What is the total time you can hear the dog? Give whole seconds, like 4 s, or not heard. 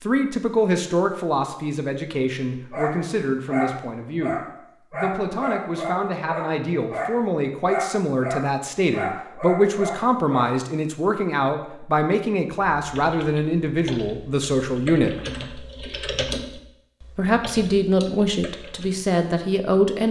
8 s.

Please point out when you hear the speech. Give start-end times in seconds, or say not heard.
0.0-15.1, 17.1-20.0.